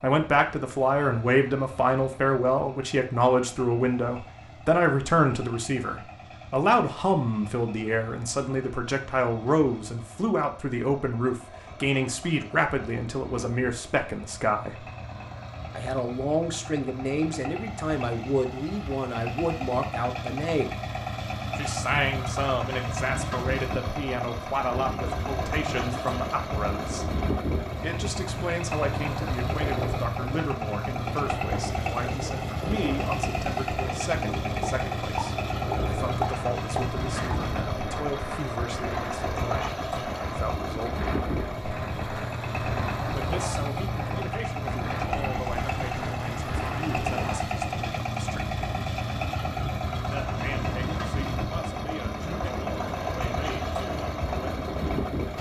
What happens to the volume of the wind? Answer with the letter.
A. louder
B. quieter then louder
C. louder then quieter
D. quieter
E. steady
E.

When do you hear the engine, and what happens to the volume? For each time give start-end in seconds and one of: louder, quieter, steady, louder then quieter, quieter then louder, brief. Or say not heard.
0.0-55.3 louder.